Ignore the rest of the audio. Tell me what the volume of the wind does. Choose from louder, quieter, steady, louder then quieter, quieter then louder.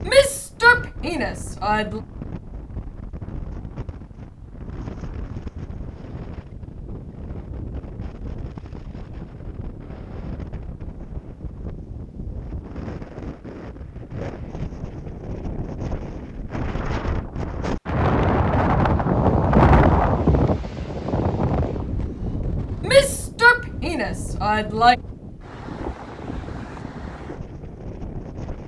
louder then quieter.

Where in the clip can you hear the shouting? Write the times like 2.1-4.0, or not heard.
0.1-2.0, 22.9-24.9.